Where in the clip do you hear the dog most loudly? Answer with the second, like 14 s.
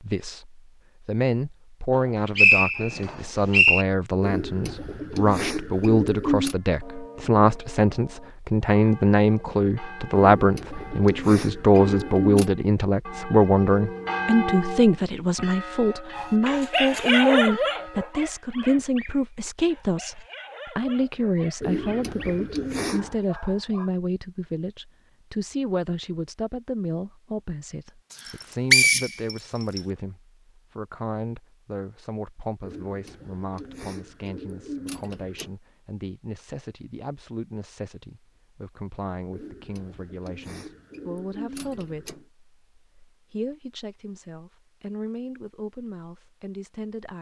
17 s.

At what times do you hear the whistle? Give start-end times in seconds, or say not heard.
2.4-3.9, 28.2-29.8.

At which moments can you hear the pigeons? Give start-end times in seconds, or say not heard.
4.2-6.5, 10.2-12.5, 21.6-23.2, 32.6-35.5, 39.3-42.2.